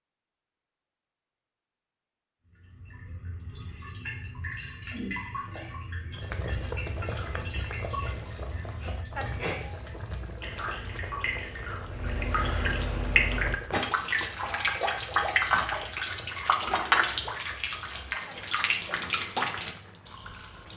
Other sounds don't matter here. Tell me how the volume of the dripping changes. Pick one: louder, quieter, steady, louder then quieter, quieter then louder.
louder.